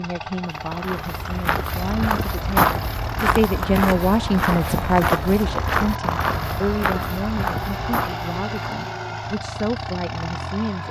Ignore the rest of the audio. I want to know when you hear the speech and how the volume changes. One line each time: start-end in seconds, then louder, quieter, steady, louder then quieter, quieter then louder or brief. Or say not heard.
0.0-10.8 louder then quieter.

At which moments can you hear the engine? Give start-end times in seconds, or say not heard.
0.0-10.8.